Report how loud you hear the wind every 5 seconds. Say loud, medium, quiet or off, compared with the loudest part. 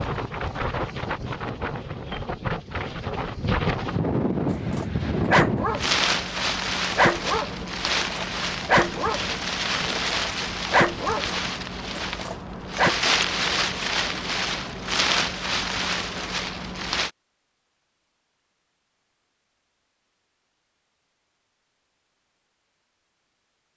loud, loud, loud, loud, off.